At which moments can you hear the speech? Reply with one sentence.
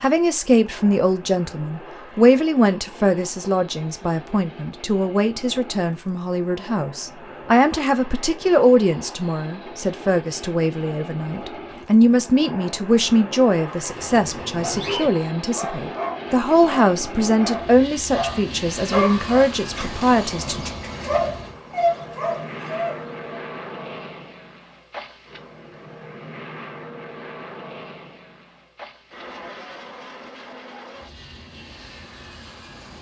You can hear the speech from 0.0 to 20.7 s.